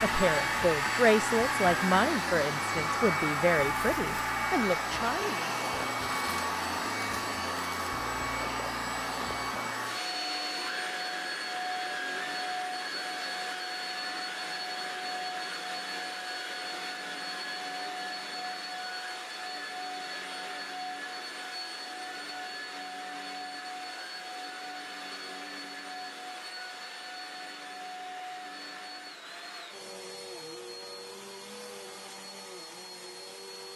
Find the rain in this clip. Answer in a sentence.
The rain can't be heard in this clip.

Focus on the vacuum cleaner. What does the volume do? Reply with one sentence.
The volume of the vacuum cleaner goes down.